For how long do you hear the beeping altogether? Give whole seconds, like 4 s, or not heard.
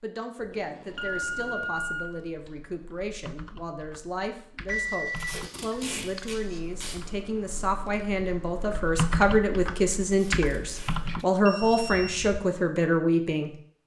4 s.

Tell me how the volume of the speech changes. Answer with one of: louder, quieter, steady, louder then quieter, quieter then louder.
louder.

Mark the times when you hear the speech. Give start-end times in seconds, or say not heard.
0.0-13.5.